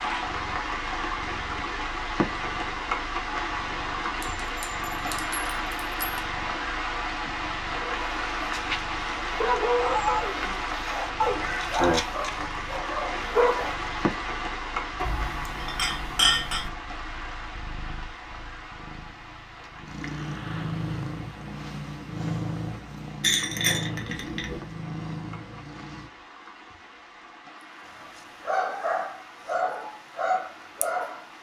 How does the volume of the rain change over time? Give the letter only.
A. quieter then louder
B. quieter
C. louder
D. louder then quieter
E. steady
B.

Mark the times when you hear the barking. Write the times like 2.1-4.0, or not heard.
7.8-13.8, 27.9-31.2.